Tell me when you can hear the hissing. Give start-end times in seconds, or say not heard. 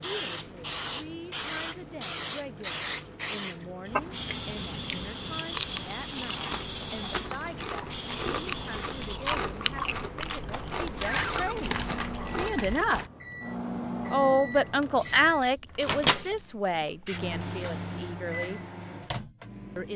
0.0-9.2, 14.9-18.1.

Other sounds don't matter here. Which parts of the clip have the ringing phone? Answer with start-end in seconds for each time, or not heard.
11.0-11.6.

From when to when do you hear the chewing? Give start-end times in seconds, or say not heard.
3.9-13.1.